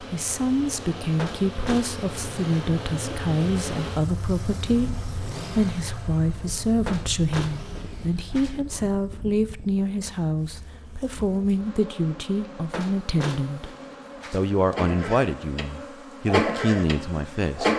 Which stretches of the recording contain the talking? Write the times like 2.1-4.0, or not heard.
0.0-13.7, 14.3-17.7.